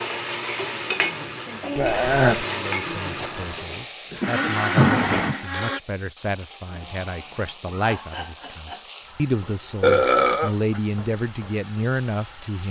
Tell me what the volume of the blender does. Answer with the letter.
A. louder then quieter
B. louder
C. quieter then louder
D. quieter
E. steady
B.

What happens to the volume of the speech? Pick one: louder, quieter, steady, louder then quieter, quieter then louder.
louder.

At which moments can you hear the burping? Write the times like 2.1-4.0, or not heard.
1.8-2.5, 4.8-5.3, 9.8-10.8.